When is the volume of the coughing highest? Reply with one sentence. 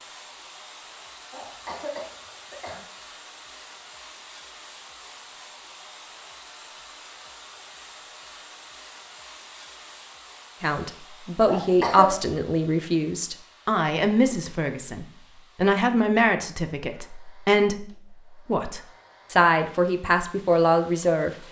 The loudest moment of the coughing is at 12 seconds.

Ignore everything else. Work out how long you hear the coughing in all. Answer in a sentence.
The coughing can be heard for 2 seconds in total.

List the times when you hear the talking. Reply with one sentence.
The talking can be heard from 10.6 to 21.3 s.